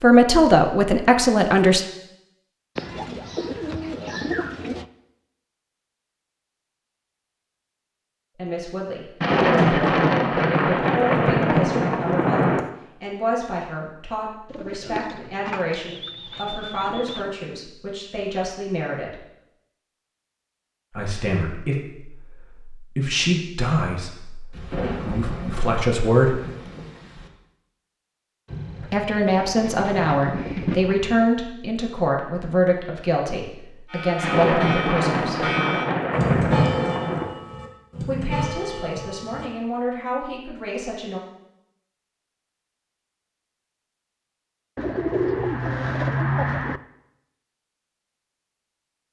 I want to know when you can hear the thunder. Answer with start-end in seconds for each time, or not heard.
9.2-12.6, 24.5-27.3, 34.2-37.4.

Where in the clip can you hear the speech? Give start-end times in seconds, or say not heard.
0.0-1.8, 8.3-19.2, 20.9-26.4, 28.9-35.5, 38.0-41.2.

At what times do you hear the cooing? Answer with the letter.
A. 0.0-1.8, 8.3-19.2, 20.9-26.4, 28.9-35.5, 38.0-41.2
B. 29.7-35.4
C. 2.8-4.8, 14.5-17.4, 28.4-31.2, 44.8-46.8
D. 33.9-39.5
C.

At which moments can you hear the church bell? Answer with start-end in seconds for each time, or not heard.
33.9-39.5.